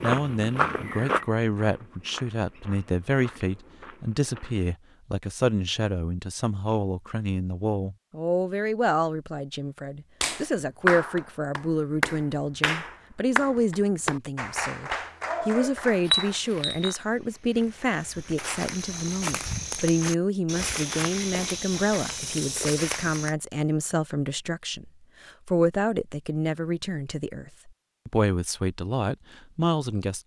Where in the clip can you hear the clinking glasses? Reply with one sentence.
You can hear the clinking glasses from 16.1 to 16.9 s.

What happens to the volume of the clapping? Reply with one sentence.
The loudness of the clapping goes down.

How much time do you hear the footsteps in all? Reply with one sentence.
The footsteps can be heard for 12 seconds in total.